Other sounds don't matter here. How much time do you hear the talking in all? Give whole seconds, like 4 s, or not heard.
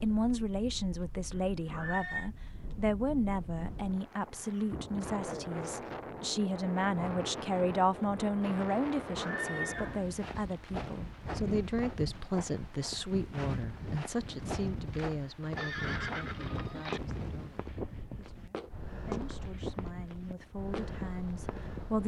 22 s.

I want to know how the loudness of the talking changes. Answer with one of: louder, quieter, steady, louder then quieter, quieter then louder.
quieter.